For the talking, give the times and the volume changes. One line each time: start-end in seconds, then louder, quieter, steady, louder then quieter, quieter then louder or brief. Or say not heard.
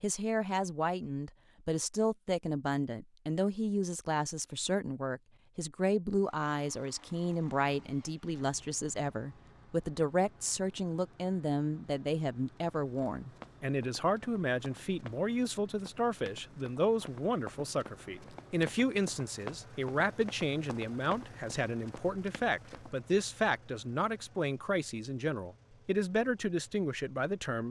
0.0-27.6 steady.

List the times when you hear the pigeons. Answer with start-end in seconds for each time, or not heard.
not heard.